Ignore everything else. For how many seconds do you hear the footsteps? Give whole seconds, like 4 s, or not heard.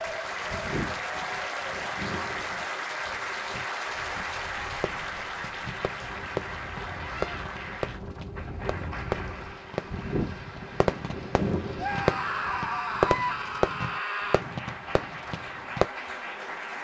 not heard.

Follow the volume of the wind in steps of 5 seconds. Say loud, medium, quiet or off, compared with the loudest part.
medium, medium, loud, off.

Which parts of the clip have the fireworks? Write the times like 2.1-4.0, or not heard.
4.2-15.8.